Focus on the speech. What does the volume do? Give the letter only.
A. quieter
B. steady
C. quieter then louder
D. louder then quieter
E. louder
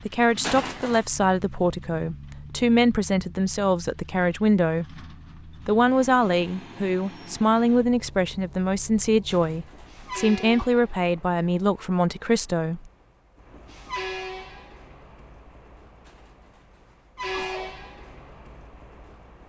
B.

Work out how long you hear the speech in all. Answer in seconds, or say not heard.
13 s.